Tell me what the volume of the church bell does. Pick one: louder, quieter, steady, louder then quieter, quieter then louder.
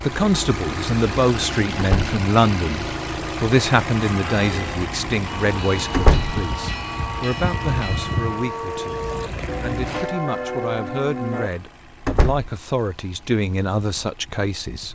louder.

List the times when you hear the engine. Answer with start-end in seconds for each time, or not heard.
0.0-14.8.